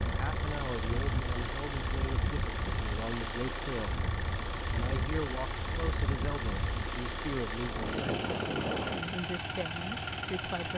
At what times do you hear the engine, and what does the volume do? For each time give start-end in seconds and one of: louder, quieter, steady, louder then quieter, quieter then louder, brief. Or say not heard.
0.0-10.7 steady.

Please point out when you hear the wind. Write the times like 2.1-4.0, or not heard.
0.0-9.1.